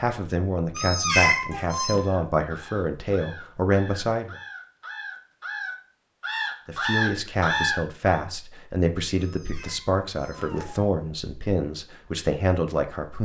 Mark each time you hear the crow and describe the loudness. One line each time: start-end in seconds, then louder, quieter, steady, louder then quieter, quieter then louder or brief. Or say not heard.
1.9-8.2 louder.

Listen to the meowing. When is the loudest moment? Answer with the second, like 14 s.
1 s.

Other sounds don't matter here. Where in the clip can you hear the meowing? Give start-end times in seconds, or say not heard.
0.8-2.0, 9.2-10.9.